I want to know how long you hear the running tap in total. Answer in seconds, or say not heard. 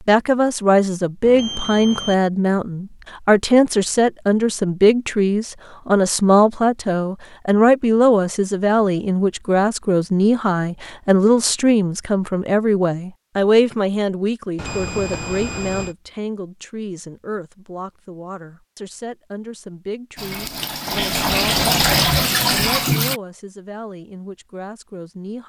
3 s.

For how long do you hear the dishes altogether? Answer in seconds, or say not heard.
not heard.